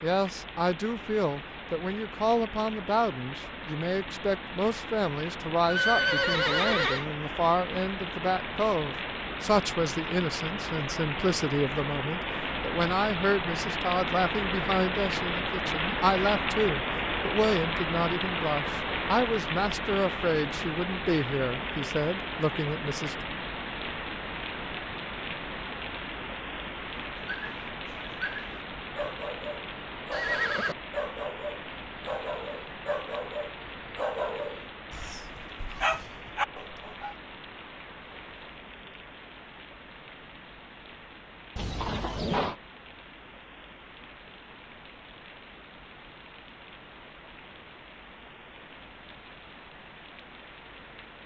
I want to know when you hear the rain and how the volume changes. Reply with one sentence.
You can hear the rain from 0.0 to 51.2 s, getting louder then quieter.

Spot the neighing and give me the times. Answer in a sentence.
You can hear the neighing from 5.7 to 7.0 s, from 30.1 to 30.8 s and from 41.5 to 42.5 s.